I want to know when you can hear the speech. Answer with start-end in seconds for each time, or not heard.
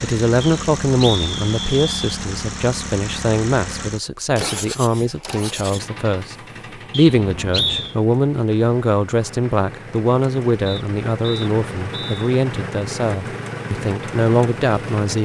0.0-15.2.